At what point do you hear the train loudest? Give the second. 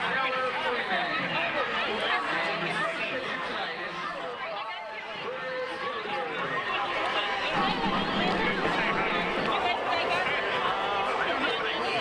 8 s.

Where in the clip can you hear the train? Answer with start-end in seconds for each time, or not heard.
7.5-11.9.